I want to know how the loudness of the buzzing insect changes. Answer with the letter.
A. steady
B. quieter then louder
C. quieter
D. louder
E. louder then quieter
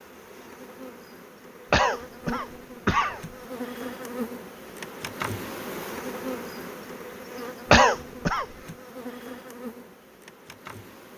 E.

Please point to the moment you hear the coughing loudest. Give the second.
8 s.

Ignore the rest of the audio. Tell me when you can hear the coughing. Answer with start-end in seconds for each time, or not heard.
1.7-3.2, 7.7-8.4.